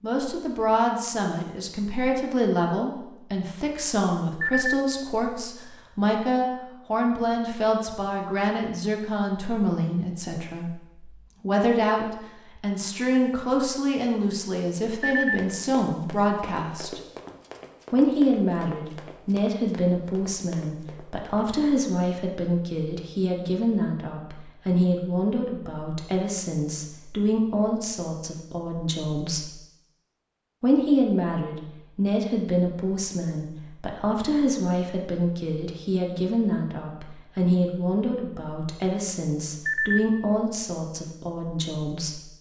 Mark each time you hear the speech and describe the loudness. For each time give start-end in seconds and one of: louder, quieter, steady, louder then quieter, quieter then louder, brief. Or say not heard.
0.0-17.0 steady
17.9-29.5 steady
30.6-42.2 steady.